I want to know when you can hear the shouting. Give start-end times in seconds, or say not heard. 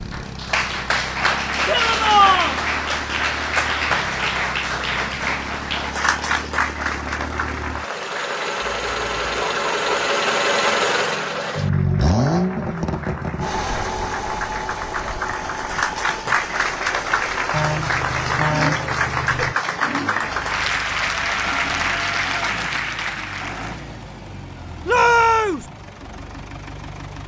1.6-2.5, 24.9-25.6.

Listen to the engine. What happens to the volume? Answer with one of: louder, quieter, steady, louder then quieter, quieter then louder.
louder then quieter.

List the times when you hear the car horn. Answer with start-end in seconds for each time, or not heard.
8.6-9.9, 17.5-19.6.